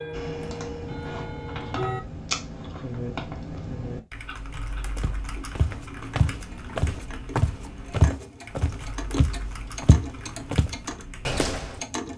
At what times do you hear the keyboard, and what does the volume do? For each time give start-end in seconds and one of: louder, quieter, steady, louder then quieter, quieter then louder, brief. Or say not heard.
0.1-11.4 quieter.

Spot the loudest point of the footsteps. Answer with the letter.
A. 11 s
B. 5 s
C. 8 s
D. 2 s
C.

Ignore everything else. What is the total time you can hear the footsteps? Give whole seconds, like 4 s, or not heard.
7 s.